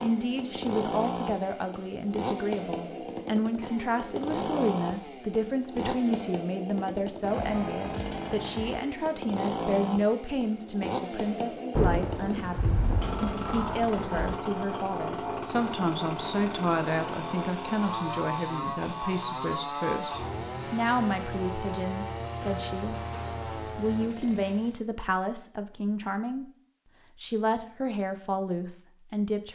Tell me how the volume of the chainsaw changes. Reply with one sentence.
The loudness of the chainsaw stays about the same.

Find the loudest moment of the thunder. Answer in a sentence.
The volume of the thunder peaks at 12 seconds.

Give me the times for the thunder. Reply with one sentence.
You can hear the thunder from 11.8 to 14.3 s.